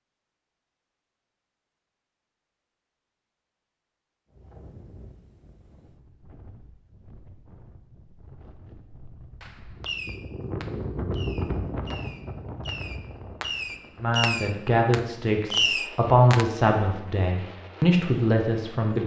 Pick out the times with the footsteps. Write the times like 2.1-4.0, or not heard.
not heard.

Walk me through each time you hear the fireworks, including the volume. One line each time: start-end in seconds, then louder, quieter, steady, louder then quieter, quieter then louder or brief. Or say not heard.
9.4-16.4 quieter then louder.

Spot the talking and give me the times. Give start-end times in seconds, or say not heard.
14.0-19.0.